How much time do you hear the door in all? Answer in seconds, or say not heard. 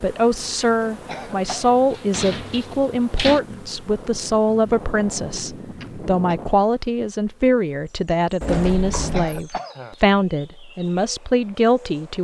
3 s.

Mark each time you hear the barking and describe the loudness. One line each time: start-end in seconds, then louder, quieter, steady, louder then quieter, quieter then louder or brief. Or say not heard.
not heard.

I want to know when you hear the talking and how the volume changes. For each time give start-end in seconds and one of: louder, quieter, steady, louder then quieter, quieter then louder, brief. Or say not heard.
0.0-12.1 steady.